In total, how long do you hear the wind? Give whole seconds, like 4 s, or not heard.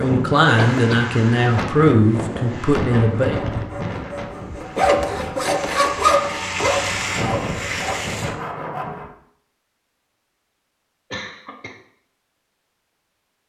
8 s.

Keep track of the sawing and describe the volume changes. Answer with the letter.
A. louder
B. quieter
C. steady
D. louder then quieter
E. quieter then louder
D.